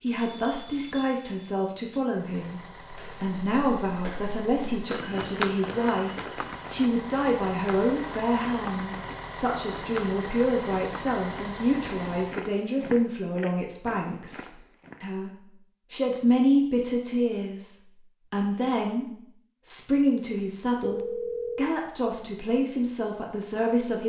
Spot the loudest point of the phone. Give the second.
21 s.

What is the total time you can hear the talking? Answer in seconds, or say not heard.
23 s.